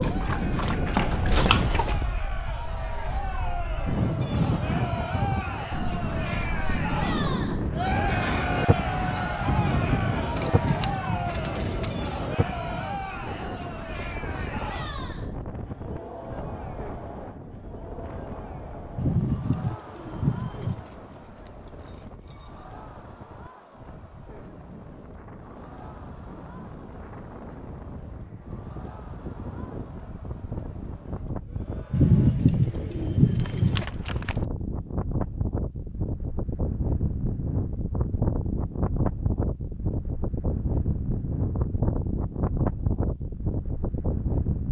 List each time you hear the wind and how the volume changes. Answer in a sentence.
The wind can be heard from 0.0 to 44.6 s, getting quieter then louder.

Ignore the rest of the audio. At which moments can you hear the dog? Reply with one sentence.
You can hear the dog from 0.0 to 2.1 s.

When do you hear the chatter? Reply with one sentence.
The chatter can be heard from 0.0 to 32.4 s.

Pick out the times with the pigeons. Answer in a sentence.
You can hear the pigeons from 9.4 to 12.2 s, from 18.9 to 20.9 s and from 31.9 to 33.9 s.